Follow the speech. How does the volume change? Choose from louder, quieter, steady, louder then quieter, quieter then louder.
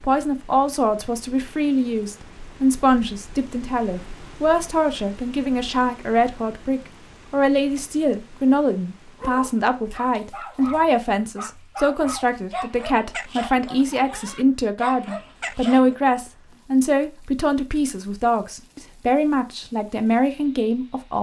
steady.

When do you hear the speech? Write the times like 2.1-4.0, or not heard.
0.0-21.1.